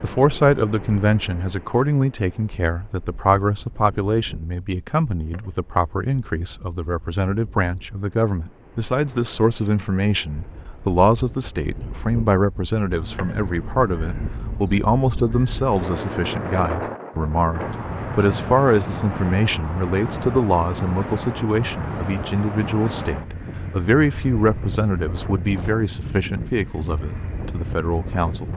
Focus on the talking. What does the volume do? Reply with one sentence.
The volume of the talking stays about the same.